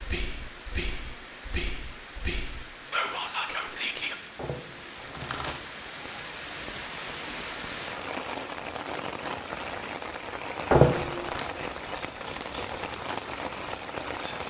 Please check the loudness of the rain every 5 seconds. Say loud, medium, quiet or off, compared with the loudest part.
medium, loud, loud.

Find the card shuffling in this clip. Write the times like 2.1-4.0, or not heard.
4.3-5.6, 10.7-11.4.